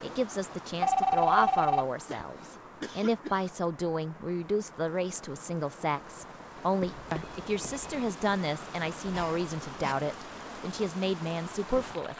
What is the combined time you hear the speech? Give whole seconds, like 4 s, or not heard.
12 s.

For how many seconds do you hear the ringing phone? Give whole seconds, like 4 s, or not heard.
2 s.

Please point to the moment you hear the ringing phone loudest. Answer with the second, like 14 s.
1 s.